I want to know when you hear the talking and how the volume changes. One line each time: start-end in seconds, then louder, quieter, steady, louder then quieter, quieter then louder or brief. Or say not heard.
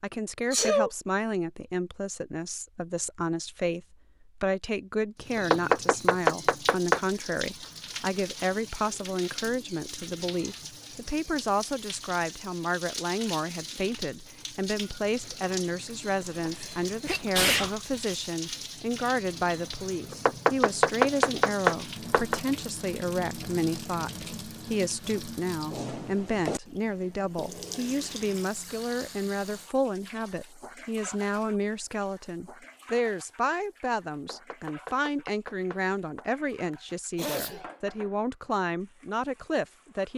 0.0-40.1 steady.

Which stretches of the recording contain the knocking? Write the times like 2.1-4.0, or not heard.
5.3-7.0, 20.1-22.4, 34.1-36.2.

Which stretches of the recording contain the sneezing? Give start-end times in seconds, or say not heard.
0.5-0.9, 16.2-17.8, 36.7-37.8.